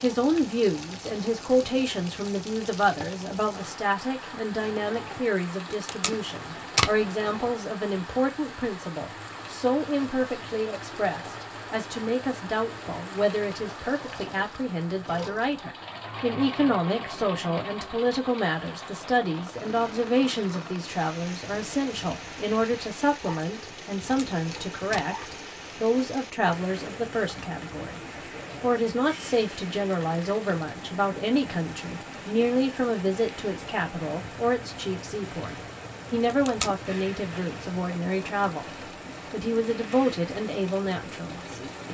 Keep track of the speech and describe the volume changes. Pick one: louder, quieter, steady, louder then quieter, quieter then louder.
steady.